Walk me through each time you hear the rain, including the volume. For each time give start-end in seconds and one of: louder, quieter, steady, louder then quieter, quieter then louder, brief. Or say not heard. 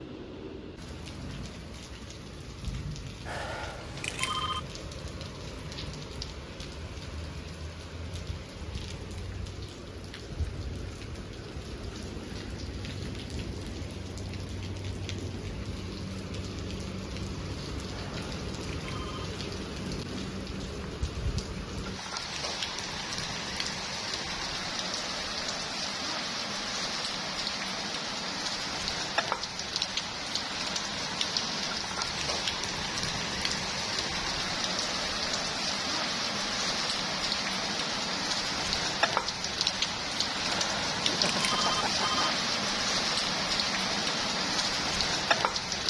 0.0-45.8 louder.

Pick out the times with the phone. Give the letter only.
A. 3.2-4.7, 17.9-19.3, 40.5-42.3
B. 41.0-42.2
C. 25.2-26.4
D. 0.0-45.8
A.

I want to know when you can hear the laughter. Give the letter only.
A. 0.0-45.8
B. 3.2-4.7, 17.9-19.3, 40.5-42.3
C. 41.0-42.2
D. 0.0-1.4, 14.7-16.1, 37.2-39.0
C.